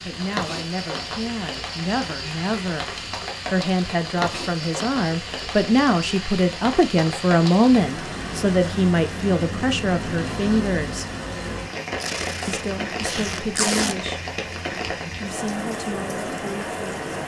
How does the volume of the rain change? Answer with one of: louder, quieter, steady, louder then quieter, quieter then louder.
steady.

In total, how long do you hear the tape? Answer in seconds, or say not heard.
2 s.